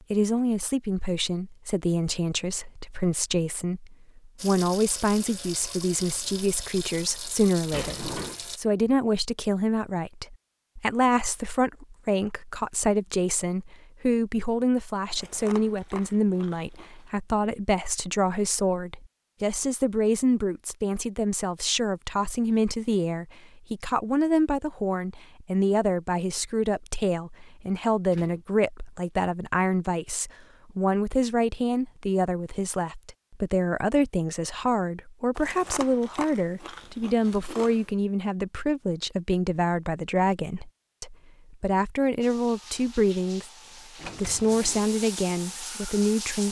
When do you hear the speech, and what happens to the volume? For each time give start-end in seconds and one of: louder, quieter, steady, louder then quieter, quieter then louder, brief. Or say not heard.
0.1-46.4 steady.